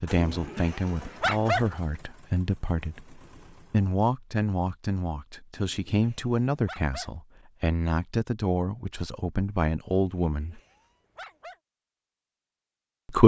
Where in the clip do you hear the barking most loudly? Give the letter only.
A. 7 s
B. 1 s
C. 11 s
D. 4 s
B.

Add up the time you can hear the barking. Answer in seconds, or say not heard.
4 s.